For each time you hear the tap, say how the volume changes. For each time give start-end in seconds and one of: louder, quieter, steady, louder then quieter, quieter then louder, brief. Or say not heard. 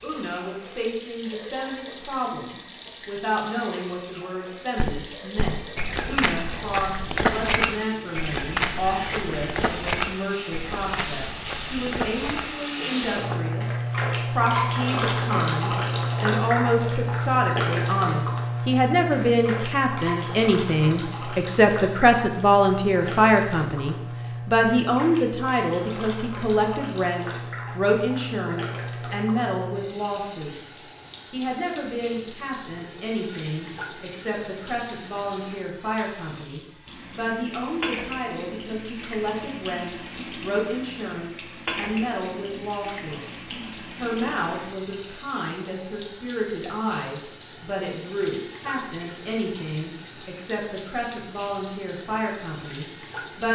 0.0-53.4 louder then quieter.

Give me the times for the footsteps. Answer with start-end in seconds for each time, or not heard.
4.8-13.6.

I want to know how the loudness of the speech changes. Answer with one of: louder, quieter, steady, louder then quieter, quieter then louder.
louder then quieter.